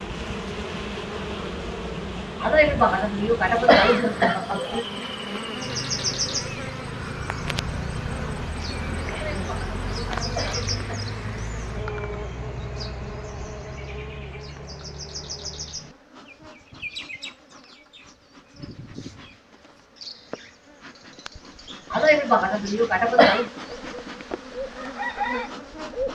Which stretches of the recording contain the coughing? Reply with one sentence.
The coughing can be heard from 2.4 to 4.8 s, from 9.1 to 11.1 s and from 21.9 to 23.5 s.